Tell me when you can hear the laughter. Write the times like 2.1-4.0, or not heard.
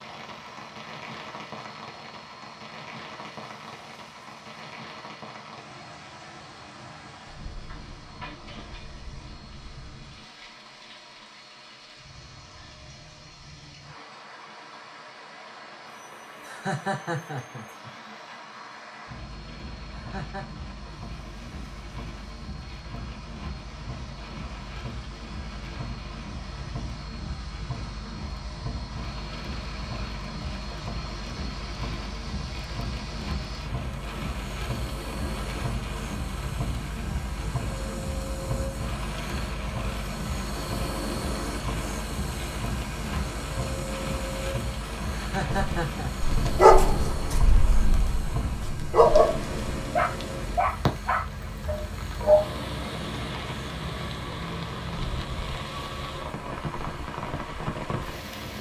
16.4-17.9, 19.9-20.6, 45.1-46.1.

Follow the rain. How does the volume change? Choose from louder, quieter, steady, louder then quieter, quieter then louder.
louder.